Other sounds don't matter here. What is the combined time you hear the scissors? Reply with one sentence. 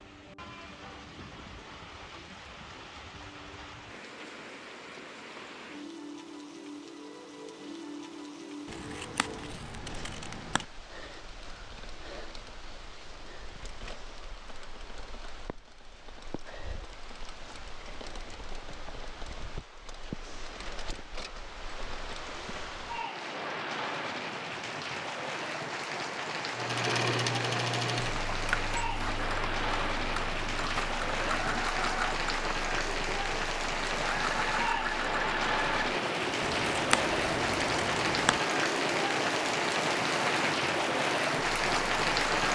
The scissors can be heard for 4 seconds in total.